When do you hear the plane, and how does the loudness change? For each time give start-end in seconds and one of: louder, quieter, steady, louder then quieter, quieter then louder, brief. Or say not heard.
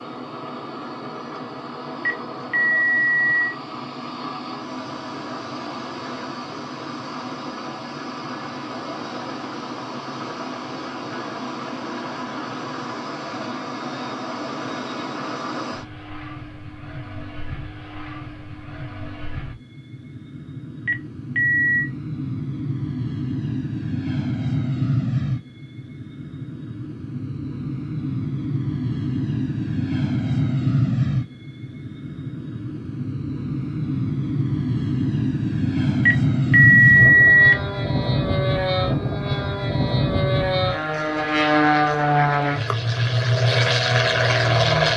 0.0-44.9 louder.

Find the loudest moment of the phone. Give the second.
37 s.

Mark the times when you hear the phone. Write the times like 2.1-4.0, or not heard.
2.0-3.5, 20.9-21.9, 36.0-37.5.